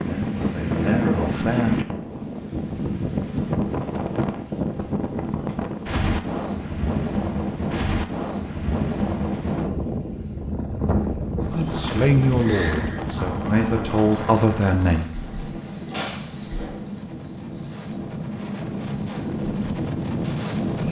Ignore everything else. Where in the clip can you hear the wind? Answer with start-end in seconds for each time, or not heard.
0.0-20.8.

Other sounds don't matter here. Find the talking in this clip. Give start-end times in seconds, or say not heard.
0.1-1.8, 11.4-15.1.